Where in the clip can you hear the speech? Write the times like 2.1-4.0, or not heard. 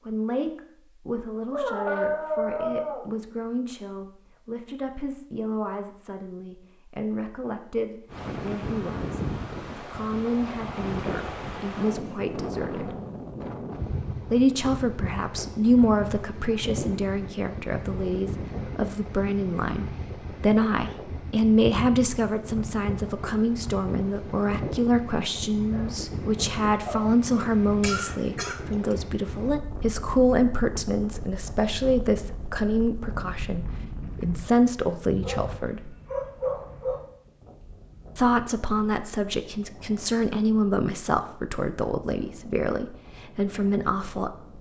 0.1-12.9, 14.3-36.0, 38.1-44.5.